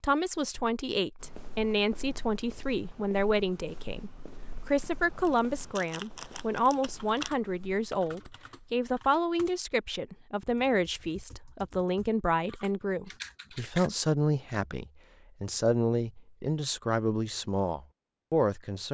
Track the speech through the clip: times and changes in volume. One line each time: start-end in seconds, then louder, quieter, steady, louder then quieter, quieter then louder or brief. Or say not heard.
0.0-18.8 steady.